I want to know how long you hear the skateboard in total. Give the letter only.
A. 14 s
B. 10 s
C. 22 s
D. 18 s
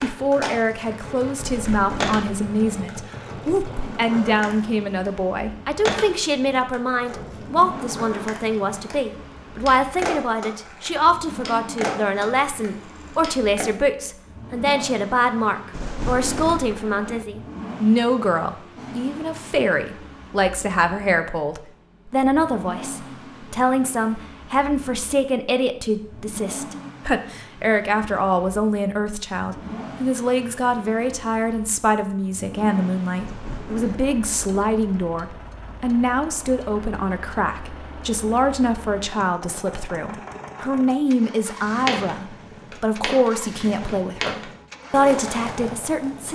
D.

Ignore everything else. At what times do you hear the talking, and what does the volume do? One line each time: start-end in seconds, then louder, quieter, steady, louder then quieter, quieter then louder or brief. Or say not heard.
0.0-46.3 steady.